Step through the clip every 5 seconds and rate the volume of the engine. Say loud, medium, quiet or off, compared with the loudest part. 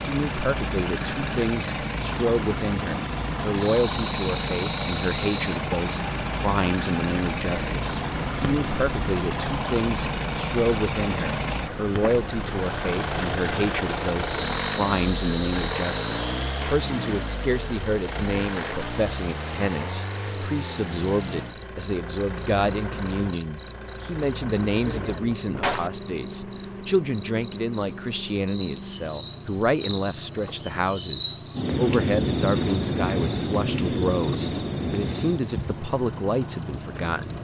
loud, loud, loud, loud, medium, medium, medium, medium.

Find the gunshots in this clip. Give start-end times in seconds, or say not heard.
24.4-25.9.